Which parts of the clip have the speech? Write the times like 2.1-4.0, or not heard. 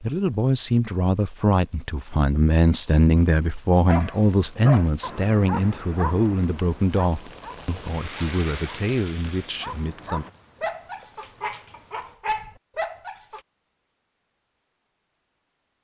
0.0-10.2.